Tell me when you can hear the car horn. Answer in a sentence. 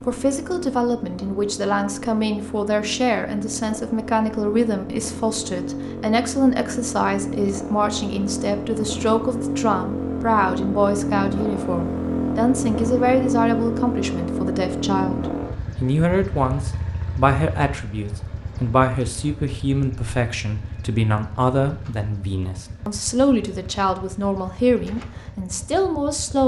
You can't hear the car horn here.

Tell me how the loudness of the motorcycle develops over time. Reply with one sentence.
The loudness of the motorcycle goes up, then down.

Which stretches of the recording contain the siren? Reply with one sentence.
The siren can't be heard in this clip.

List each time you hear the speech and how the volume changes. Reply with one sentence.
The speech can be heard from 0.0 to 26.4 s, at a steady volume.